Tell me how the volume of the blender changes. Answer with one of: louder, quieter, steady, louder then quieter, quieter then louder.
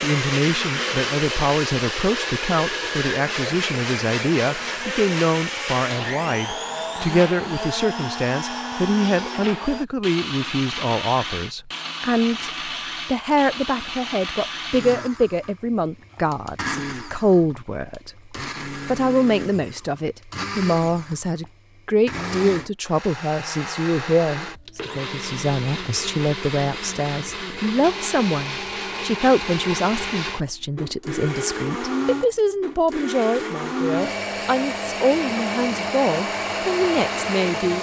quieter then louder.